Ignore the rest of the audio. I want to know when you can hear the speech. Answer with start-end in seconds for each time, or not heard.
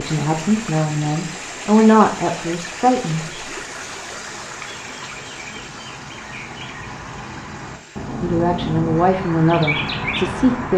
0.0-3.4, 8.2-10.7.